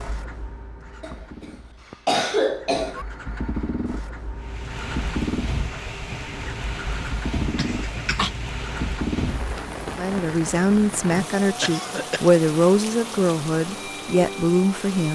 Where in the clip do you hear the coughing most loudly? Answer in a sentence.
The loudest moment of the coughing is at 2 seconds.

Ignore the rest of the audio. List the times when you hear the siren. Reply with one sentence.
You can't hear the siren here.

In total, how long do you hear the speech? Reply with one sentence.
You can hear the speech for 5 seconds altogether.